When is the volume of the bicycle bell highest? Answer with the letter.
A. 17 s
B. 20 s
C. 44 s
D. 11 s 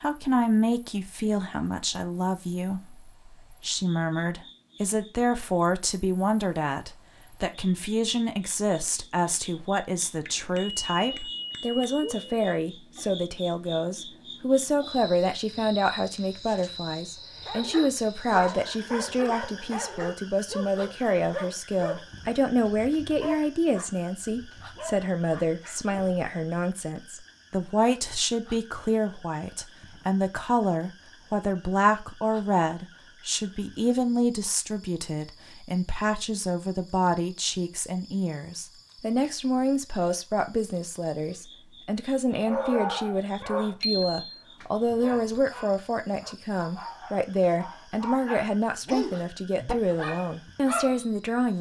C.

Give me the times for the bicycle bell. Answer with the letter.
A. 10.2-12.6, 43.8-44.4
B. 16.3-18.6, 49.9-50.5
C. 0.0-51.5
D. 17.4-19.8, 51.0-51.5
A.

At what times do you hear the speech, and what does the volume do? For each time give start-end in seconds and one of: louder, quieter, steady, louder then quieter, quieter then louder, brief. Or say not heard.
0.0-51.5 steady.